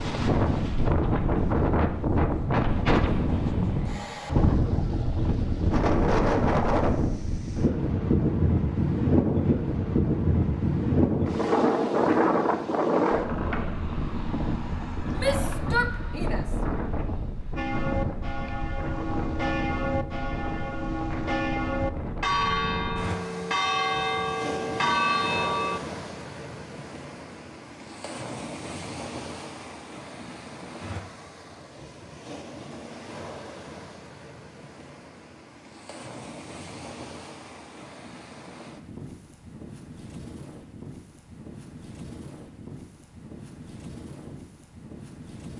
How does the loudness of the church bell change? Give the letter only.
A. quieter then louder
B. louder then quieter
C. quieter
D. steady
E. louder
E.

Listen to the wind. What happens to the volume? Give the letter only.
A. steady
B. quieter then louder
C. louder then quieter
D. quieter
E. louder
D.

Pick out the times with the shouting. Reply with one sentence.
You can hear the shouting from 15.2 to 16.4 s.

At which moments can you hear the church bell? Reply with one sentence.
You can hear the church bell from 17.6 to 25.8 s.